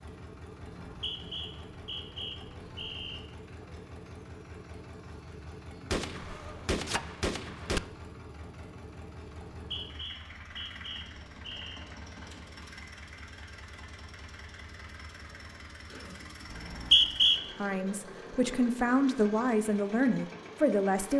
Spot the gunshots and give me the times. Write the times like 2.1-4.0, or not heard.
5.9-7.8.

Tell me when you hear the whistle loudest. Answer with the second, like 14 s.
17 s.